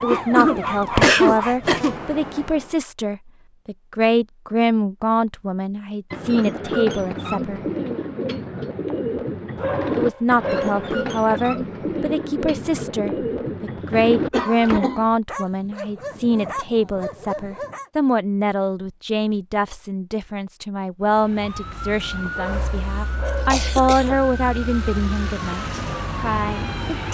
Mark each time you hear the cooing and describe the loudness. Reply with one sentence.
You can hear the cooing from 6.1 to 14.8 s, at a steady volume.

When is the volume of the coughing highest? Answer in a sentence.
The loudest moment of the coughing is at 1 second.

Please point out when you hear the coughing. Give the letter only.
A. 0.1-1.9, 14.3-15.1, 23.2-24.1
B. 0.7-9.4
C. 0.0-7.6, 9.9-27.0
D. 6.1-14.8
A.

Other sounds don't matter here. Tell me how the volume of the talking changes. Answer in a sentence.
The volume of the talking stays about the same.